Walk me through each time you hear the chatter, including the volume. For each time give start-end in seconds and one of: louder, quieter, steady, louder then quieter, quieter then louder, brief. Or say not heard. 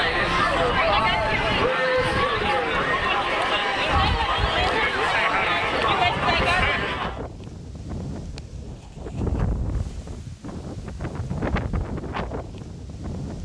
0.0-7.2 steady.